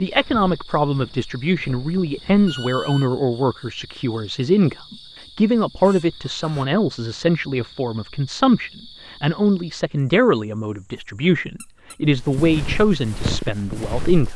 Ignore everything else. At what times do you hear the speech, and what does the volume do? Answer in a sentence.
You can hear the speech from 0.0 to 14.3 s, at a steady volume.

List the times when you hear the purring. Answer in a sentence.
You can't hear the purring here.